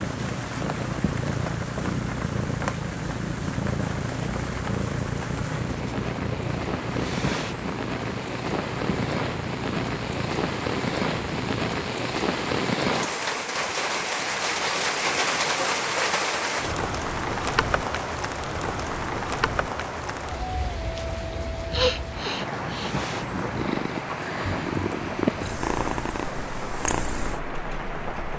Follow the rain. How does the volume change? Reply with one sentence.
The volume of the rain goes up, then down.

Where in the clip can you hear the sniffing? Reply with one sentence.
The sniffing can be heard from 21.7 to 22.9 s.